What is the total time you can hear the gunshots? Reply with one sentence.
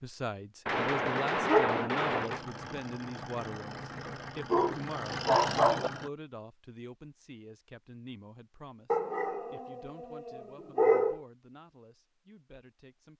The gunshots can be heard for 2 seconds in total.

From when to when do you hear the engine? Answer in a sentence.
You can hear the engine from 2.2 to 6.1 s.